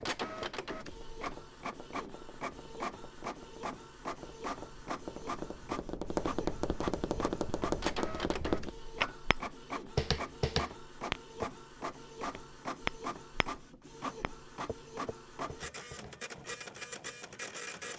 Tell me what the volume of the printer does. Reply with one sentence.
The volume of the printer stays about the same.